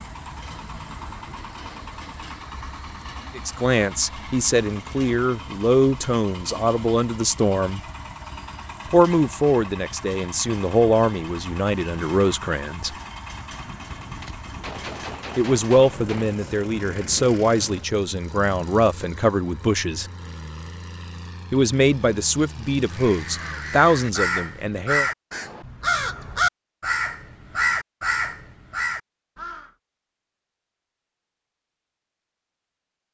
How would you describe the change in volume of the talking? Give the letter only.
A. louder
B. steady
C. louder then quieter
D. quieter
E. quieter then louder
B.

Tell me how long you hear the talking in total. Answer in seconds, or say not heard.
17 s.